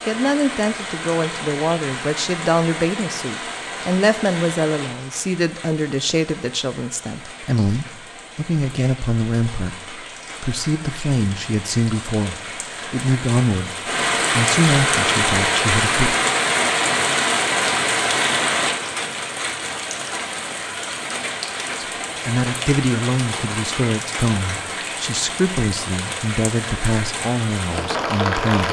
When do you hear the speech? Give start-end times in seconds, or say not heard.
0.1-16.1, 21.8-28.6.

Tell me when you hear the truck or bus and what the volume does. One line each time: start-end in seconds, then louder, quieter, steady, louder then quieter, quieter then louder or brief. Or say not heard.
not heard.